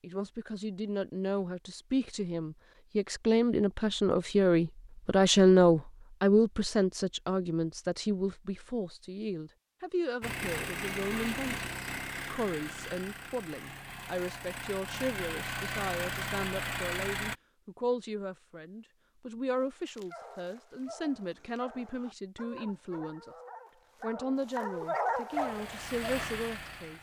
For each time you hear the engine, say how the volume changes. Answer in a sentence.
You can hear the engine from 10.2 to 17.4 s, getting quieter then louder; and briefly from 25.3 to 26.9 s.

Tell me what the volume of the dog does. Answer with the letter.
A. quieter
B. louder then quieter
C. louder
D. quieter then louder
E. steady
C.